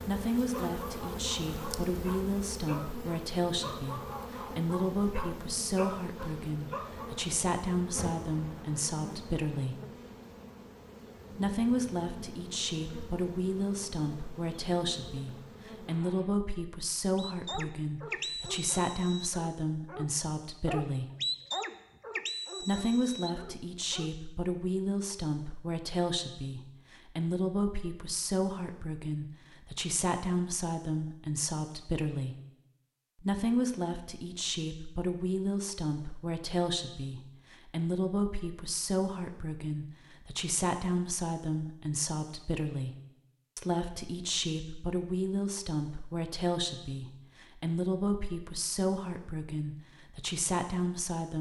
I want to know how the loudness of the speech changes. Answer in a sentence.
The loudness of the speech stays about the same.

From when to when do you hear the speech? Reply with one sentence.
You can hear the speech from 0.0 to 9.8 s, from 11.3 to 21.1 s, from 22.6 to 32.4 s, from 33.2 to 43.0 s and from 43.5 to 51.3 s.